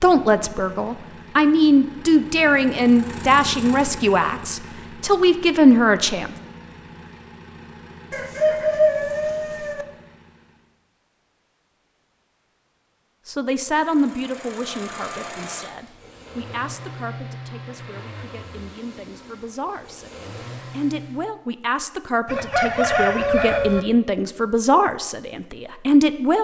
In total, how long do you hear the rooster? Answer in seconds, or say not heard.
3 s.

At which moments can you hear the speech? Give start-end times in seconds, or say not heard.
0.0-6.3, 13.2-26.3.